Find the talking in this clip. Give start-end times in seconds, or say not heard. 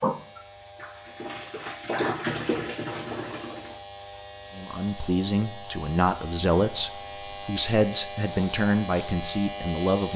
4.5-10.1.